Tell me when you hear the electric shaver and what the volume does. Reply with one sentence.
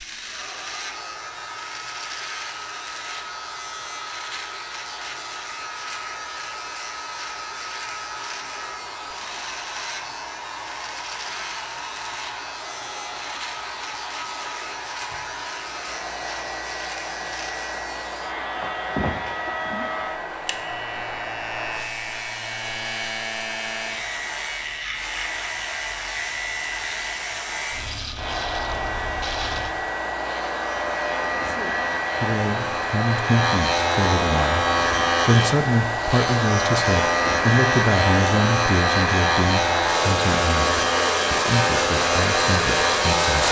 The electric shaver can be heard from 0.0 to 43.4 s, getting louder.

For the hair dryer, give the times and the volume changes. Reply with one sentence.
The hair dryer can be heard from 0.1 to 43.4 s, getting louder.